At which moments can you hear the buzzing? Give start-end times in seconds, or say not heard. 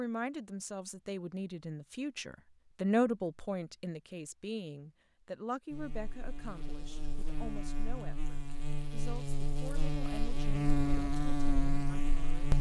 5.7-12.5.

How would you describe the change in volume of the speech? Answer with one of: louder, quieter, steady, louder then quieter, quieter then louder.
louder then quieter.